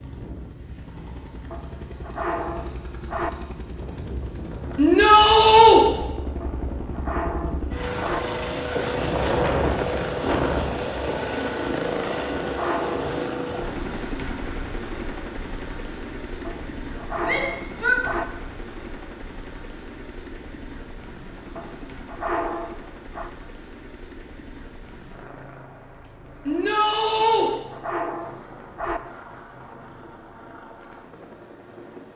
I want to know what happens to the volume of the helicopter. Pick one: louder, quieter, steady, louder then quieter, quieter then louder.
louder then quieter.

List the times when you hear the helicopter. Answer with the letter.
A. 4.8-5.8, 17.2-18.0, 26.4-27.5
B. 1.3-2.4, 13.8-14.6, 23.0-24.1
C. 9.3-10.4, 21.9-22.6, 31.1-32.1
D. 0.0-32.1
D.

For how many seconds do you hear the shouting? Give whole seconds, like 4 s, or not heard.
3 s.